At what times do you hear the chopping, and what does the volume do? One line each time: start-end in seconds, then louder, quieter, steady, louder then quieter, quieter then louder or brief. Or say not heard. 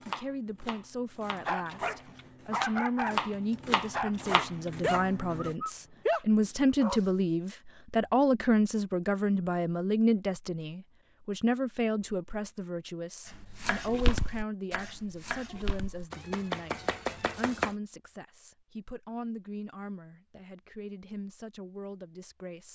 0.0-5.5 quieter then louder
13.3-17.7 quieter then louder.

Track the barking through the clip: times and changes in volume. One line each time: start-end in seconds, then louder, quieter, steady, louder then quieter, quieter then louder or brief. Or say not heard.
1.3-7.0 louder.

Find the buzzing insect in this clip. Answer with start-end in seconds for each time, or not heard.
not heard.